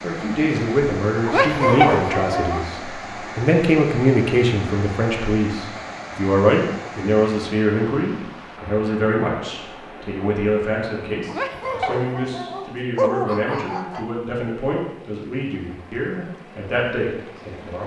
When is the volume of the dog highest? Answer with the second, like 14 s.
2 s.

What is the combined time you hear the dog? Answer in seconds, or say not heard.
4 s.